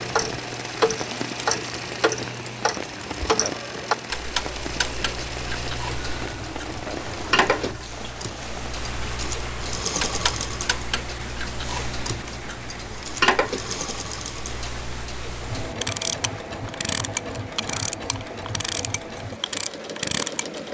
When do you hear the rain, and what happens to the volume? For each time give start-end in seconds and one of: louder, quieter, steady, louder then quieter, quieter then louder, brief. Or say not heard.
0.0-20.6 quieter.